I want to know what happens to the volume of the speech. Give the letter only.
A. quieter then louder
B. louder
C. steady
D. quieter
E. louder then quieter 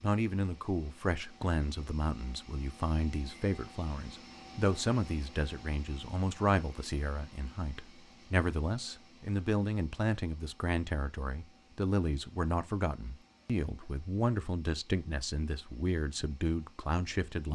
C.